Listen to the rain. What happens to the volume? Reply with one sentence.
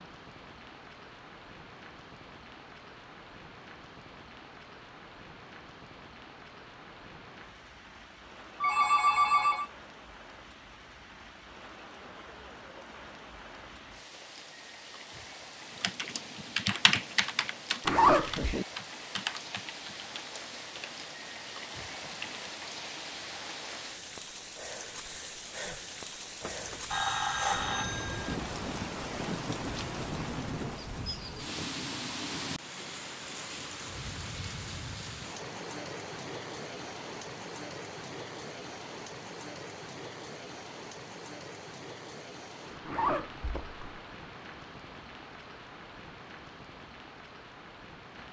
The volume of the rain goes up, then down.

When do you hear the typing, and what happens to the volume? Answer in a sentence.
The typing can be heard from 15.8 to 22.5 s, getting quieter.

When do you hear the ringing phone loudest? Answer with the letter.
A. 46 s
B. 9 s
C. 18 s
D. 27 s
B.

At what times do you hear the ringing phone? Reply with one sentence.
The ringing phone can be heard from 8.6 to 9.7 s and from 26.4 to 28.4 s.